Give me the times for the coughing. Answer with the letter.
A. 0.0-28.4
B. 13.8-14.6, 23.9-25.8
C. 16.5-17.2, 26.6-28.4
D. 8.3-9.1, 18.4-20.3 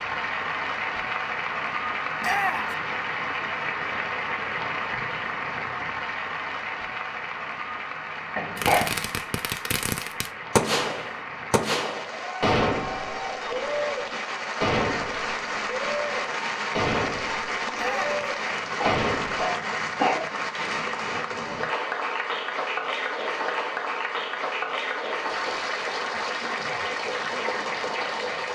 D.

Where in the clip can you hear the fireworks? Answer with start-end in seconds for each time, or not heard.
8.6-19.4.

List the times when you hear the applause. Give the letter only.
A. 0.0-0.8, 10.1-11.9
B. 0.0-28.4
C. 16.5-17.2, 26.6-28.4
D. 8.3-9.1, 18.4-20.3
B.